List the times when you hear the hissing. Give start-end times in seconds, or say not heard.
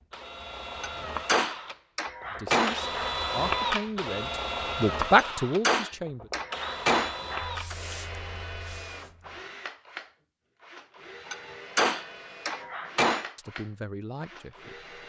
7.4-9.3.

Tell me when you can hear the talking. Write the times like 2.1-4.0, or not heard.
2.3-6.3, 13.3-14.8.